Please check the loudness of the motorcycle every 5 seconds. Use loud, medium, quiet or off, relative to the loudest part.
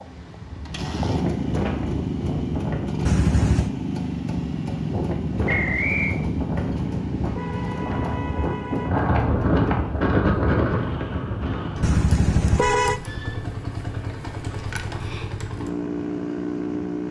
loud, loud, medium, loud.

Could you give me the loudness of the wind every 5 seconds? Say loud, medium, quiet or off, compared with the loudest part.
medium, loud, loud, off.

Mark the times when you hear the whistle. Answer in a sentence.
The whistle can be heard from 5.5 to 6.2 s.